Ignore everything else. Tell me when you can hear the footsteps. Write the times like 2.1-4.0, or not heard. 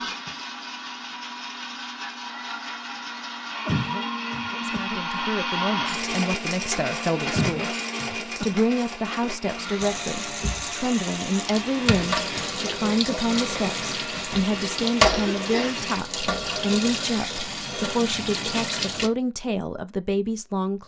not heard.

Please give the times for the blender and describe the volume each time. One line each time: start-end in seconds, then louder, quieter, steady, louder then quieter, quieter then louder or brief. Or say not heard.
0.0-16.0 louder then quieter.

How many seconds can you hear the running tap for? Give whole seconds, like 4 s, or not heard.
9 s.